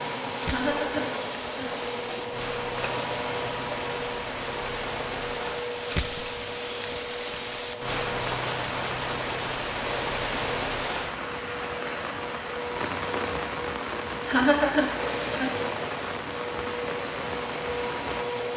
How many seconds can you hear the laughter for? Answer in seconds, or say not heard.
3 s.